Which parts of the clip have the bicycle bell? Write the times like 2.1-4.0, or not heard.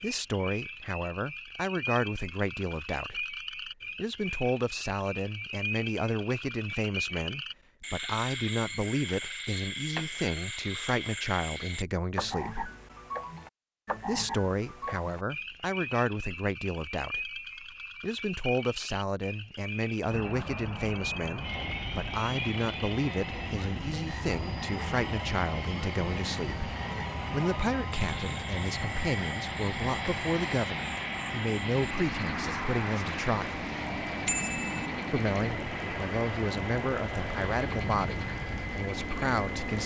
34.2-34.9.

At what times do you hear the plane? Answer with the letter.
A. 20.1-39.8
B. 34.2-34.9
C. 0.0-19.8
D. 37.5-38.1
A.